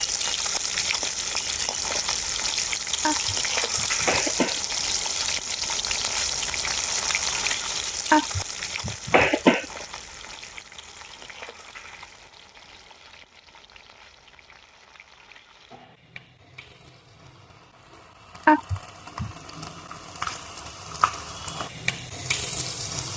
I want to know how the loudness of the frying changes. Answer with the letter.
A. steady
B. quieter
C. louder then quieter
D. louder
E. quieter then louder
E.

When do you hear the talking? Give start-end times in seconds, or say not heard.
not heard.